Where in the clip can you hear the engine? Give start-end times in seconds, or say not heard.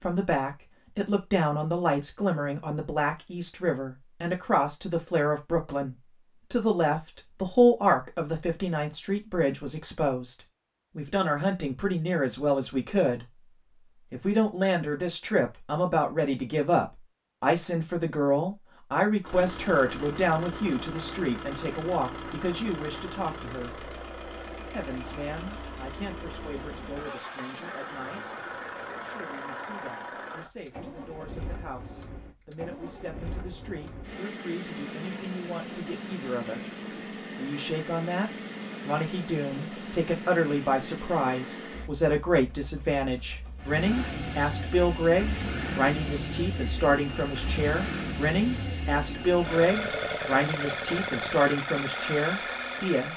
19.2-53.1.